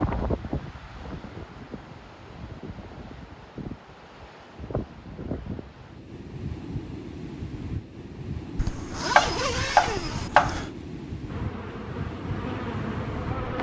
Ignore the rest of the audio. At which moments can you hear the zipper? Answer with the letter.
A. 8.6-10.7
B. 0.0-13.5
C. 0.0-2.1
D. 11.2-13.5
A.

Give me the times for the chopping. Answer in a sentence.
You can hear the chopping from 9.2 to 10.6 s.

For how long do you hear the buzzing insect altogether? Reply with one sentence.
The buzzing insect can be heard for 2 seconds in total.